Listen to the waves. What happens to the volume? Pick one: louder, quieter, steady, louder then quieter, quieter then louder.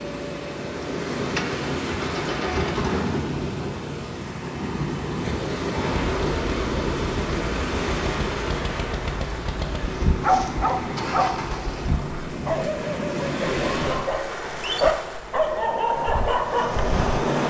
steady.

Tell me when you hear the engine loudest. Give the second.
3 s.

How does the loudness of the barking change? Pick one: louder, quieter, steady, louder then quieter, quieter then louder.
quieter then louder.